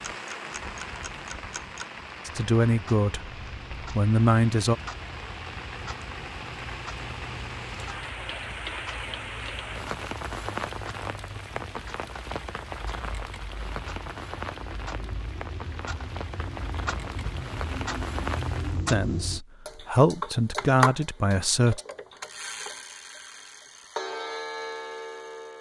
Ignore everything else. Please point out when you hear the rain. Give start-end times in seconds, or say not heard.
0.0-18.9.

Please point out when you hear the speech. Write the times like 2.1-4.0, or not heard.
2.2-4.8, 18.9-21.8.